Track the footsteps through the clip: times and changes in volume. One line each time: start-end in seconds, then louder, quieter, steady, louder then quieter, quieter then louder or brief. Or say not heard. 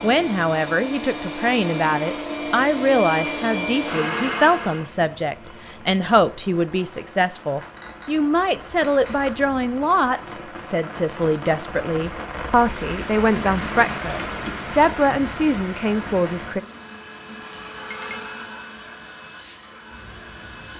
not heard.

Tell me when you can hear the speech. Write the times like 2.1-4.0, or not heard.
0.0-16.6.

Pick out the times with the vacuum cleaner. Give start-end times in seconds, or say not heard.
0.0-4.9, 16.6-20.7.